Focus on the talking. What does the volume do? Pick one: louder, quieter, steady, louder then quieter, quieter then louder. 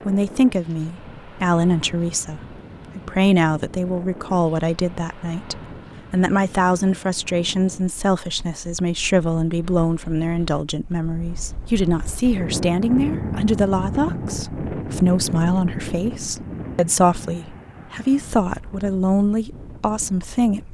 steady.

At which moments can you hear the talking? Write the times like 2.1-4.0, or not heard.
0.1-20.6.